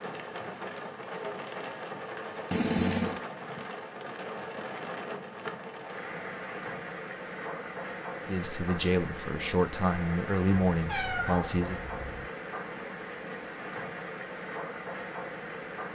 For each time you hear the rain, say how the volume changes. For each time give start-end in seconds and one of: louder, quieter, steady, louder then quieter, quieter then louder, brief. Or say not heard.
0.0-15.9 steady.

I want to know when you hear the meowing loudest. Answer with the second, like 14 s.
3 s.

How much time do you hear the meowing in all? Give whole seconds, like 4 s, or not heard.
2 s.